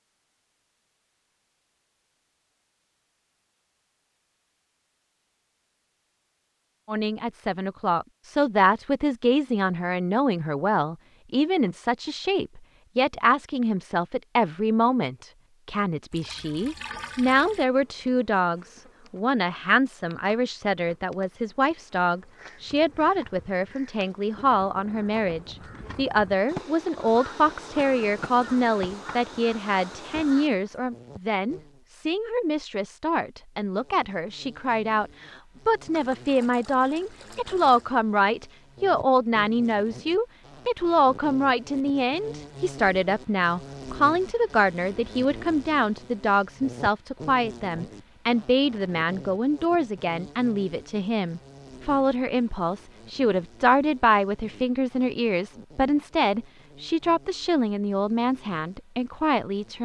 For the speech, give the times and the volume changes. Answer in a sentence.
You can hear the speech from 6.8 to 59.8 s, at a steady volume.